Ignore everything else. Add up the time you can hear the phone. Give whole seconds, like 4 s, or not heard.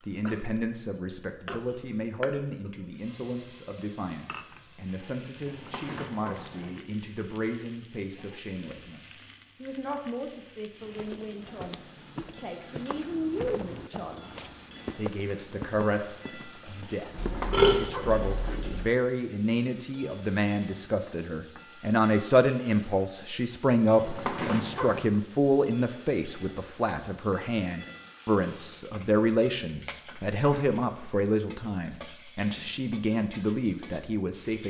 4 s.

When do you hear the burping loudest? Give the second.
18 s.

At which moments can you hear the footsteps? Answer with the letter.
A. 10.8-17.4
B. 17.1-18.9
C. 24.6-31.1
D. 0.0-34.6
A.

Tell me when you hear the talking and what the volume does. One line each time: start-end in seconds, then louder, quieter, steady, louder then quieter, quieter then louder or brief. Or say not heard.
0.0-34.6 louder.